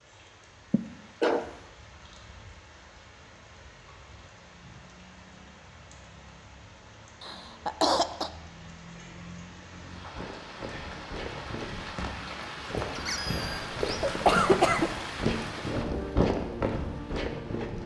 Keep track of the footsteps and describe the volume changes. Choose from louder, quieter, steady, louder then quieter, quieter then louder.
louder.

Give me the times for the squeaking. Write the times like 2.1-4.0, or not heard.
12.9-13.7.